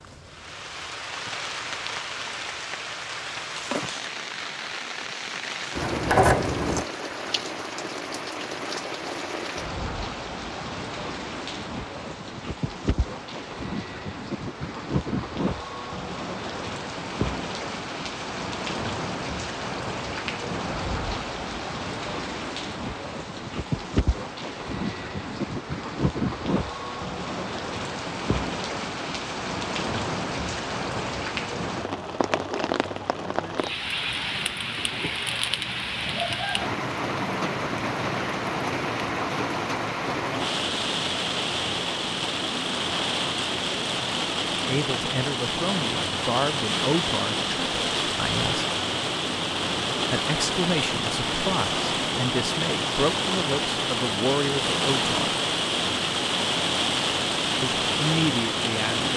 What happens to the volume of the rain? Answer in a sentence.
The volume of the rain goes up.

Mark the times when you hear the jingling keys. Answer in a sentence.
You can hear the jingling keys from 5.8 to 6.8 s.